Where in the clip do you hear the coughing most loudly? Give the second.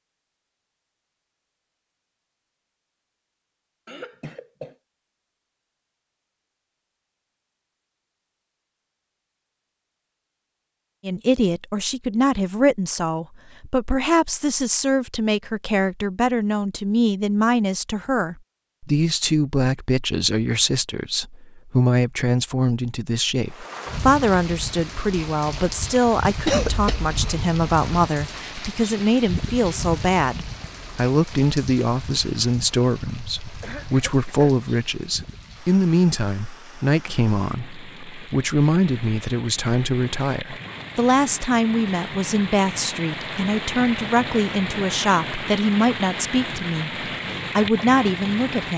27 s.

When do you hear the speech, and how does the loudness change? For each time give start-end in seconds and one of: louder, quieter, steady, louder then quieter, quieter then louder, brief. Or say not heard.
11.1-48.7 steady.